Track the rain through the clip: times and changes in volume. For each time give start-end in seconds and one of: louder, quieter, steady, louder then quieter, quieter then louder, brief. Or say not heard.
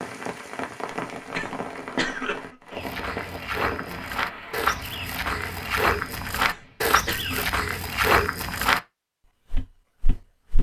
0.0-6.8 quieter.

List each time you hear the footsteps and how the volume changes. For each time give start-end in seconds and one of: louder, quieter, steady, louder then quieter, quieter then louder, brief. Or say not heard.
2.8-8.8 louder
9.5-10.5 brief.